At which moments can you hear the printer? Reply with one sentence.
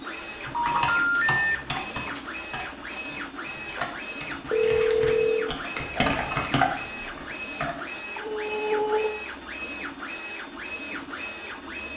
The printer can be heard from 0.0 to 11.9 s.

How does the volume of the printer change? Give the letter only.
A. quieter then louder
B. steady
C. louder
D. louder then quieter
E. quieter
B.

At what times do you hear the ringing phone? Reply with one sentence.
You can hear the ringing phone from 0.5 to 1.4 s, from 4.5 to 5.5 s and from 8.2 to 9.2 s.